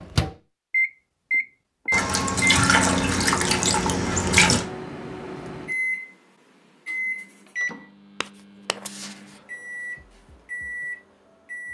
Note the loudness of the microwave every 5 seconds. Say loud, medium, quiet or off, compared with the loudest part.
loud, medium, medium.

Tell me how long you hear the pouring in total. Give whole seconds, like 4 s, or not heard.
3 s.